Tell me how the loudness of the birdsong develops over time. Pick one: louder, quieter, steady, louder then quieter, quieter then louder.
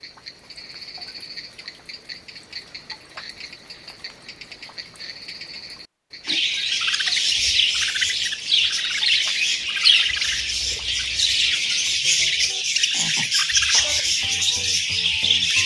steady.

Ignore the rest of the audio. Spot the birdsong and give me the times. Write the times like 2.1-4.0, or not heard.
6.2-15.6.